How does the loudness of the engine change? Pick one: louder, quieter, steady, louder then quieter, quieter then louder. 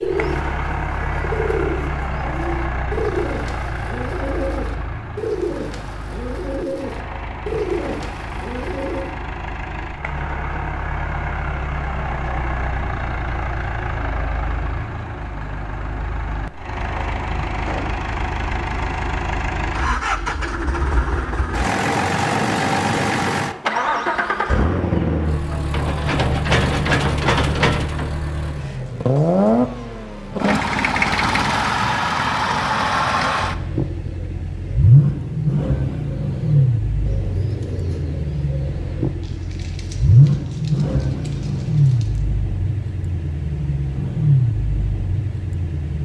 louder.